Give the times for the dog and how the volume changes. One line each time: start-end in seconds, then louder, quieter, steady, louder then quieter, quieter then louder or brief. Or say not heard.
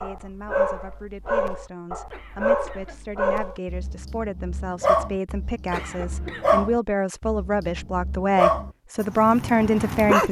0.0-10.2 steady.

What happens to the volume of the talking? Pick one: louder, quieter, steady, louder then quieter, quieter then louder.
louder.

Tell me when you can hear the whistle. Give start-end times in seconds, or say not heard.
not heard.